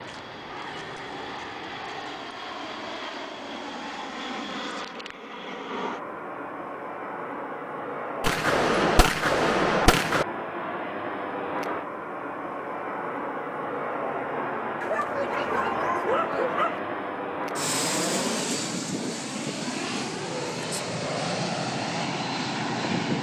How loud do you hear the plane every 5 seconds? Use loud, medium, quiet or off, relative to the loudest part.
medium, medium, loud, loud, loud.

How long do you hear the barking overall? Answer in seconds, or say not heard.
2 s.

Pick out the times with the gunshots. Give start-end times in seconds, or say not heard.
8.2-10.2.